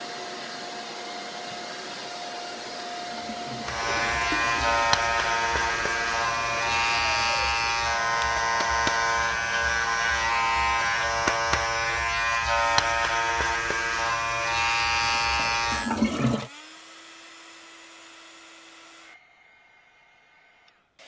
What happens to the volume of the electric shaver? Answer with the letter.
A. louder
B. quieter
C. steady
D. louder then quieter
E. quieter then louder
C.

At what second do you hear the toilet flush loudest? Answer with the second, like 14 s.
16 s.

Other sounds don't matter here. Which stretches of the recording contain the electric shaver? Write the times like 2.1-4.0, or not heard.
3.6-16.1.